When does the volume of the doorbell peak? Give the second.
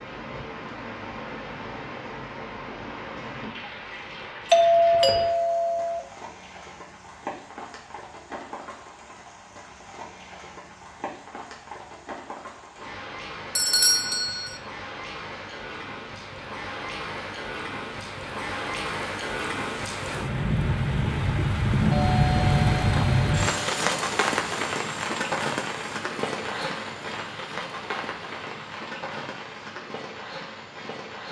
5 s.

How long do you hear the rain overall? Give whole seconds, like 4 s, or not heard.
31 s.